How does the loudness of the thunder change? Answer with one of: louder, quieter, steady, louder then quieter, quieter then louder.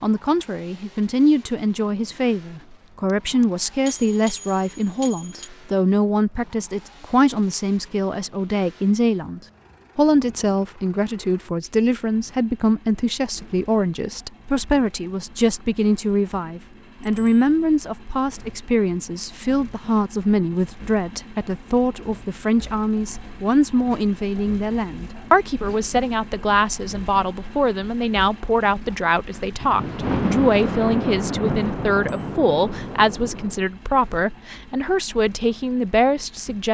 quieter.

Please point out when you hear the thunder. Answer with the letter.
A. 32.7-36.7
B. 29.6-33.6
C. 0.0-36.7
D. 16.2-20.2
B.